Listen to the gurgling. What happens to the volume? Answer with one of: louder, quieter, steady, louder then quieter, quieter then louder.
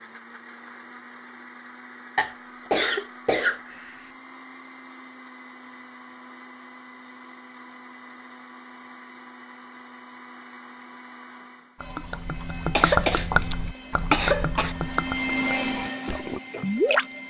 quieter.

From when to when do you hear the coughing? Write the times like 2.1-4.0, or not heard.
2.1-4.1, 12.8-13.3, 14.1-14.8.